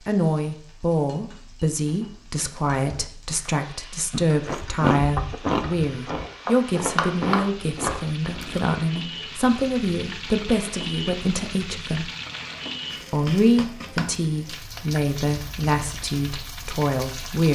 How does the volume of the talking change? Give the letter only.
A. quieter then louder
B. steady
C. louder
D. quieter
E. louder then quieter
B.